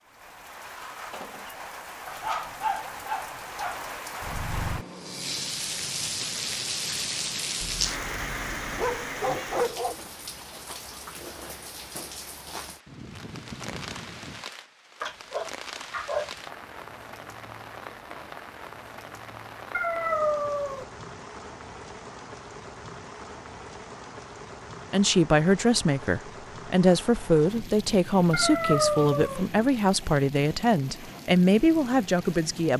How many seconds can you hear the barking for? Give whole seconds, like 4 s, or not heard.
8 s.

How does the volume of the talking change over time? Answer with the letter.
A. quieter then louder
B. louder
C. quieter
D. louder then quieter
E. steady
E.